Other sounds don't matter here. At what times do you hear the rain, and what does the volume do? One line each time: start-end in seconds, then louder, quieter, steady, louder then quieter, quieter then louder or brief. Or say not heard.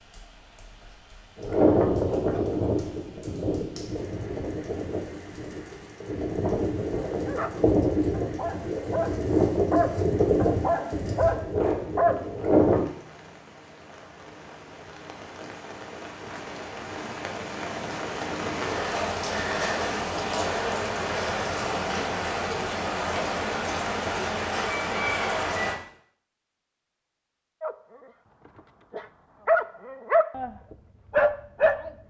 0.0-25.8 louder.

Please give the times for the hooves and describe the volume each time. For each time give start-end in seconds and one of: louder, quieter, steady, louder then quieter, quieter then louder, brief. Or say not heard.
1.4-12.8 quieter then louder.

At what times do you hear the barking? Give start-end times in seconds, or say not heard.
7.1-12.4, 27.6-31.9.